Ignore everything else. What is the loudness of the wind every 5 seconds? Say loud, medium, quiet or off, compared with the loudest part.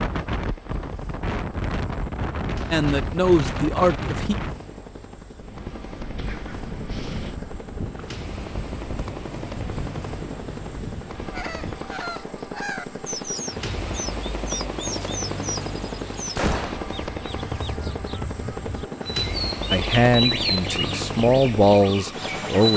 loud, medium, medium, off, off.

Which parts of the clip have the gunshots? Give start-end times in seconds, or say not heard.
16.4-16.9.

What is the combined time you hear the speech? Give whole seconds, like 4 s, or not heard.
5 s.